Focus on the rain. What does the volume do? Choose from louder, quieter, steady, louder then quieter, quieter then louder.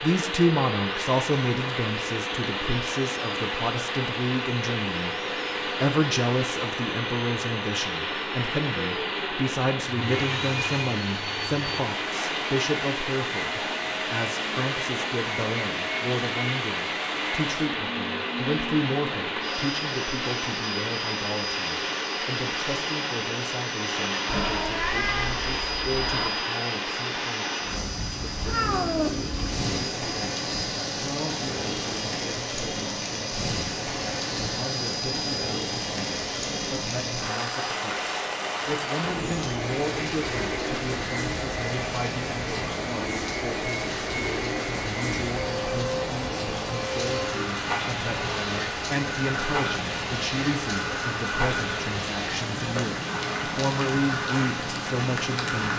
steady.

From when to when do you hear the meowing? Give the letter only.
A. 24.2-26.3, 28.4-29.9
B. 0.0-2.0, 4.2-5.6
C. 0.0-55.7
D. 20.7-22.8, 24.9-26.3
A.